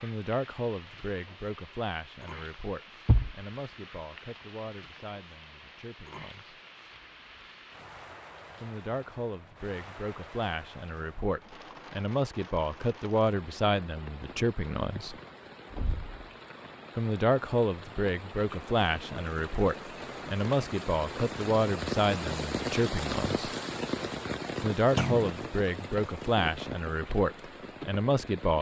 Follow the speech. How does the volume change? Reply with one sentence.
The loudness of the speech goes up.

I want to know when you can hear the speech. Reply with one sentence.
The speech can be heard from 0.0 to 6.6 s, from 8.6 to 15.2 s, from 16.9 to 23.4 s and from 24.6 to 28.5 s.